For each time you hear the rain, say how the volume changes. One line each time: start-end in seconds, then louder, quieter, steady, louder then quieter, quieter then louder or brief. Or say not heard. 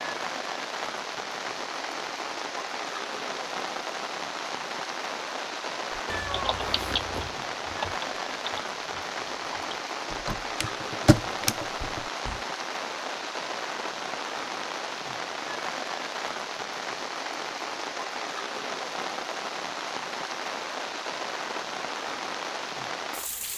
0.0-23.5 steady.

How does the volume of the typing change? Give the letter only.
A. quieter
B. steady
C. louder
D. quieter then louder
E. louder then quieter
D.